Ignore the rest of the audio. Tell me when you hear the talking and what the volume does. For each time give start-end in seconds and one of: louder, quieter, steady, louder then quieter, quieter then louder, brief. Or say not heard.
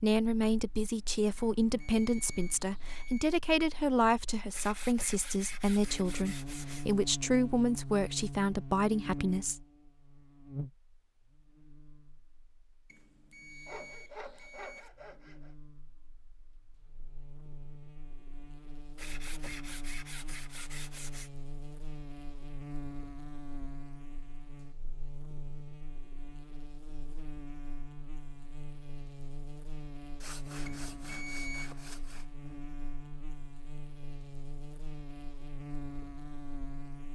0.0-9.7 steady.